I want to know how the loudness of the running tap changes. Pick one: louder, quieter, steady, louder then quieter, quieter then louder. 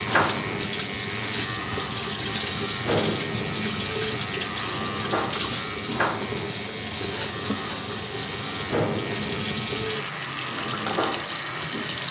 steady.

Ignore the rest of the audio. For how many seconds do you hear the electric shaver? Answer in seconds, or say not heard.
12 s.